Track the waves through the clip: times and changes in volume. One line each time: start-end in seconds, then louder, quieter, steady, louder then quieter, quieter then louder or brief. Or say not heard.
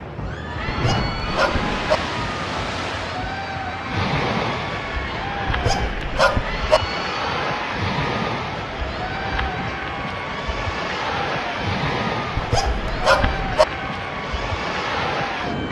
0.0-15.6 steady.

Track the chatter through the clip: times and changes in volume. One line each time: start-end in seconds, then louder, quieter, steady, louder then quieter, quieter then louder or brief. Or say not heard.
0.1-15.6 steady.